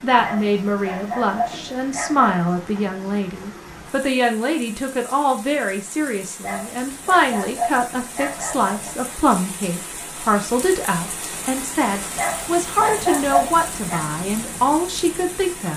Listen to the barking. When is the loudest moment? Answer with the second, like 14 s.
13 s.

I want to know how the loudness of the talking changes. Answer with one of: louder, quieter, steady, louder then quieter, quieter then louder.
steady.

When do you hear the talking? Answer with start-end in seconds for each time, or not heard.
0.0-15.7.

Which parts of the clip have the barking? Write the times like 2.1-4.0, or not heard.
0.2-2.4, 6.4-8.9, 12.2-14.1.